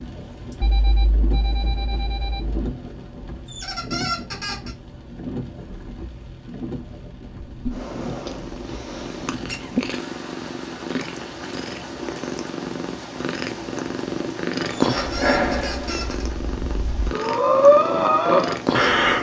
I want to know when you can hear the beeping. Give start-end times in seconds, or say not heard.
0.6-2.7.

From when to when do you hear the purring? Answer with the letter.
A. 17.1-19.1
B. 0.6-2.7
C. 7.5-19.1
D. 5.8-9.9
C.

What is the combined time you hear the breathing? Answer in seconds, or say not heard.
4 s.